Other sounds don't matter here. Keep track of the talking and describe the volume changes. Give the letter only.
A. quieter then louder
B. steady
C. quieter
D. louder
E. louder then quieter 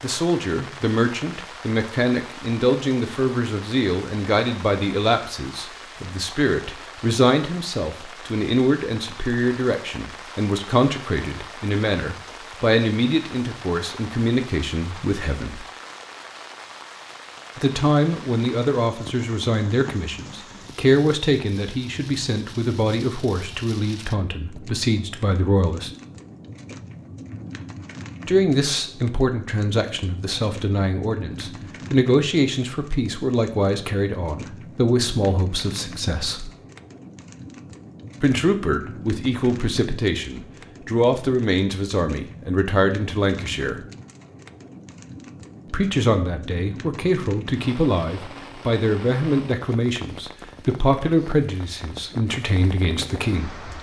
B.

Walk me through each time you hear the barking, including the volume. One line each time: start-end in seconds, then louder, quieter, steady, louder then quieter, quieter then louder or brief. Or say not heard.
not heard.